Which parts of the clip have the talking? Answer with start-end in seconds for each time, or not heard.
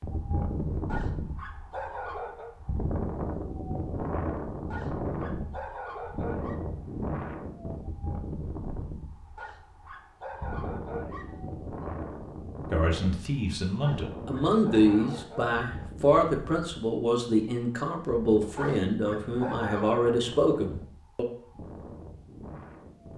12.7-21.2.